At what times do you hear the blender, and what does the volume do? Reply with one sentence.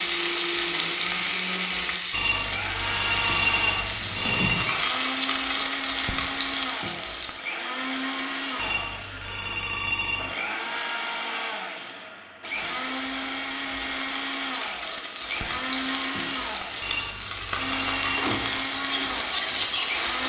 You can hear the blender from 0.0 to 20.2 s, at a steady volume.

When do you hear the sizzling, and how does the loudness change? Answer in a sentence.
You can hear the sizzling from 0.0 to 7.4 s, at a steady volume; and from 12.4 to 20.2 s, getting louder.